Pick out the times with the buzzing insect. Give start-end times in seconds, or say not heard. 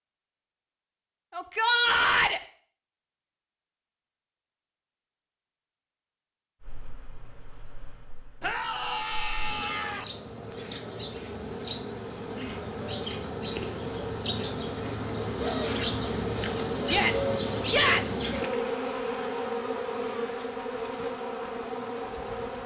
6.6-22.6.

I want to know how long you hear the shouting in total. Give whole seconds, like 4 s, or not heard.
4 s.